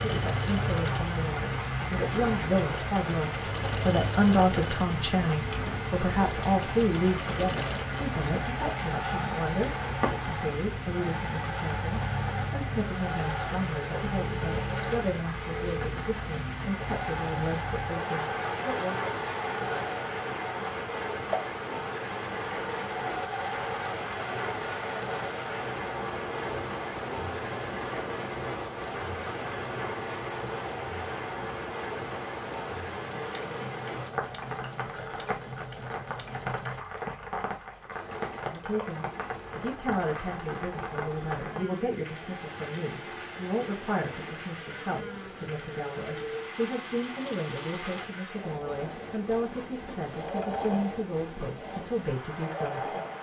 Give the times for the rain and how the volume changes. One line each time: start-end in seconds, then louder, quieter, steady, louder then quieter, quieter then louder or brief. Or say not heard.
0.0-53.1 quieter.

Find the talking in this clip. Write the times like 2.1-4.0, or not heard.
0.0-19.0, 38.5-53.0.